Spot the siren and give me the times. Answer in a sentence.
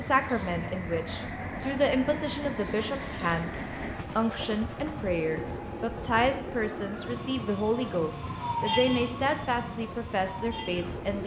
You can hear the siren from 0.1 to 10.9 s.